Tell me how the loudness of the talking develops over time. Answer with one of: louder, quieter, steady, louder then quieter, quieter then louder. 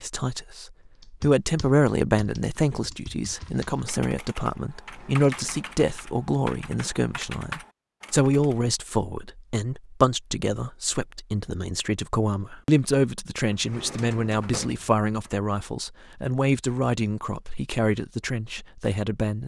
steady.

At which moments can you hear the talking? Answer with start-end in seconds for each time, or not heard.
0.0-19.4.